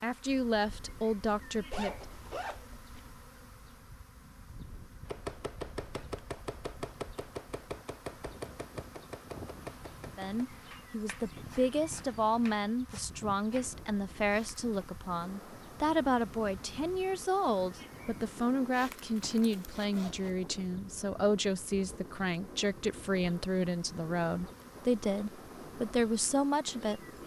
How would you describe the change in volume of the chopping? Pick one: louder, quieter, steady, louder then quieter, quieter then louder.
quieter.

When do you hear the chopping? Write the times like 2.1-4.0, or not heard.
5.0-13.7.